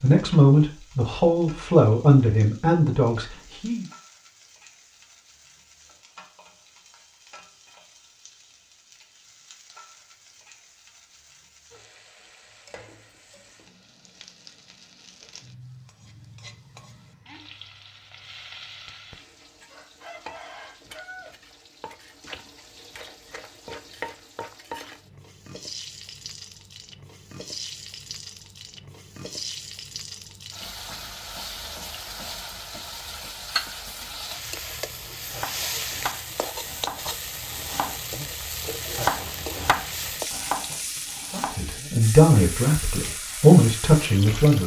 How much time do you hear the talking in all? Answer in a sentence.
You can hear the talking for 7 seconds altogether.